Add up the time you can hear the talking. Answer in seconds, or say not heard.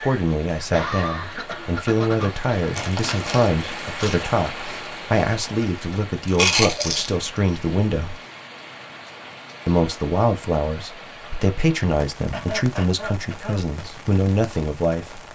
14 s.